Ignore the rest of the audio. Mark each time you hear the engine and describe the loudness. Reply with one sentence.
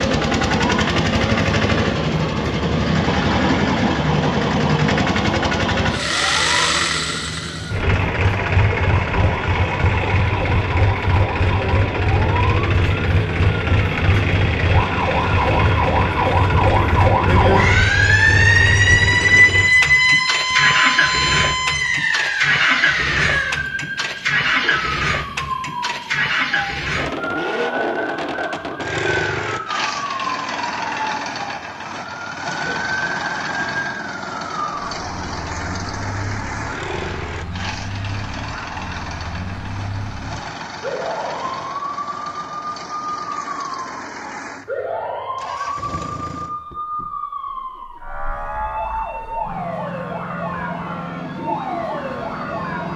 You can hear the engine from 0.0 to 52.9 s, getting quieter.